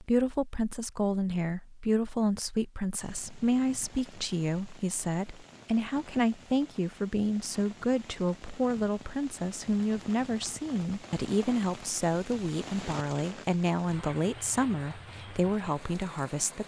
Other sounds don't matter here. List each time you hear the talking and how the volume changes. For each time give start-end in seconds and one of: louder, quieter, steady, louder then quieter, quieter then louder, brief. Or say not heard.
0.0-16.6 steady.